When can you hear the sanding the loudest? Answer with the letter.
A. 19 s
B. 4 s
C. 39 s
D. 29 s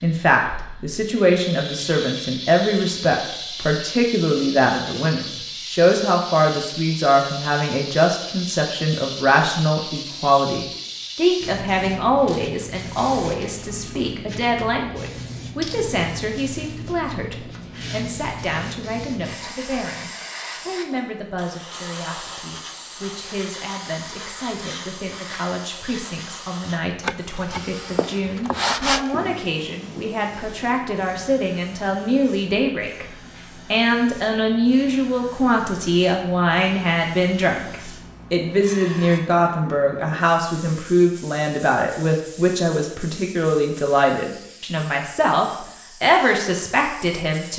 D.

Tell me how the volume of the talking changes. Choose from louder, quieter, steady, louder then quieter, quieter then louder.
quieter then louder.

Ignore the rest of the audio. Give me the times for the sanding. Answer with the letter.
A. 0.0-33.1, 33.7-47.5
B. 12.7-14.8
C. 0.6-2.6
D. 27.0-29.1
D.